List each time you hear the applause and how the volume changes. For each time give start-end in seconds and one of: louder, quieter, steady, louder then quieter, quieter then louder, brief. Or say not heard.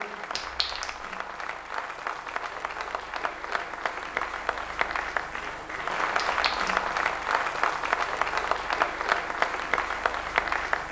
0.0-10.8 louder.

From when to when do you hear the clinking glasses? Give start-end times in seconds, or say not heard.
0.3-1.0, 6.2-6.8.